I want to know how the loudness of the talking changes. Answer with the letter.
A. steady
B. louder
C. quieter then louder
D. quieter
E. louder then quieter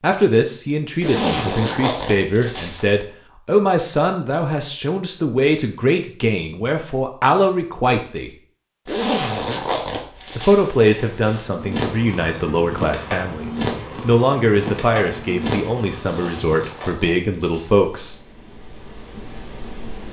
A.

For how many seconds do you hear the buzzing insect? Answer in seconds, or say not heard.
9 s.